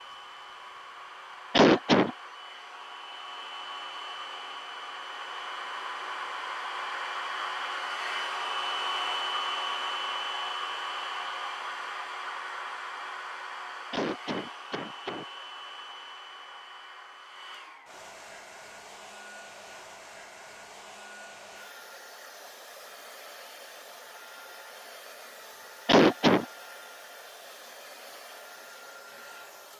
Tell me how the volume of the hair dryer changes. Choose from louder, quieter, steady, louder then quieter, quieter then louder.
louder then quieter.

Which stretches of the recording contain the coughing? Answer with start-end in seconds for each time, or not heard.
1.5-2.1, 13.9-15.2, 25.9-26.4.